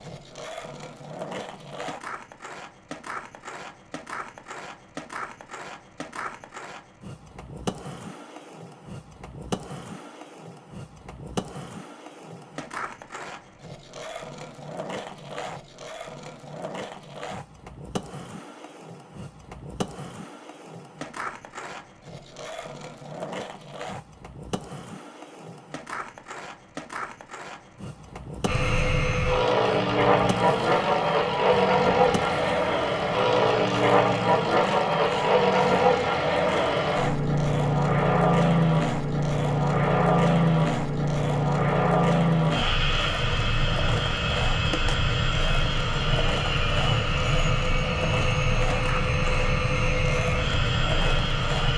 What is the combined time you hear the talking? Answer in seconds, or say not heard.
not heard.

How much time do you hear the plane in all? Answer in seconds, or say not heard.
23 s.